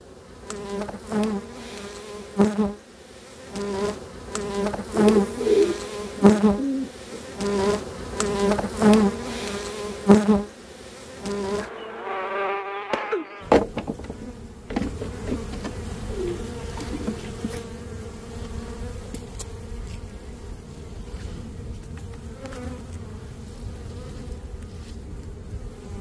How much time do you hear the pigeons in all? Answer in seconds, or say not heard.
4 s.